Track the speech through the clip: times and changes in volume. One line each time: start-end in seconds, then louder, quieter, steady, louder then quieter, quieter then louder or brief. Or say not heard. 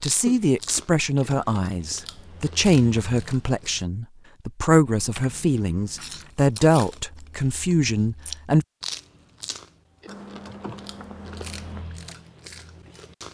0.0-8.7 steady.